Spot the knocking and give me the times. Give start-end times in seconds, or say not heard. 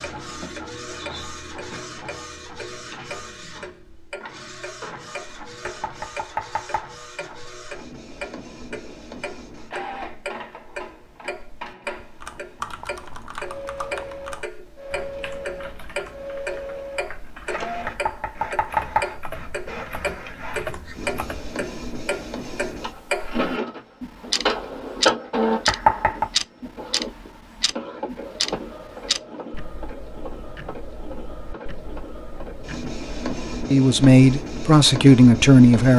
5.7-7.0, 17.9-19.1, 25.6-26.3.